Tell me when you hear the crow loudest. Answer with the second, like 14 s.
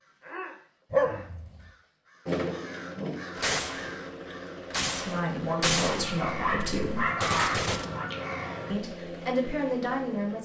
7 s.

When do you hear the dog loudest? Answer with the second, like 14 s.
1 s.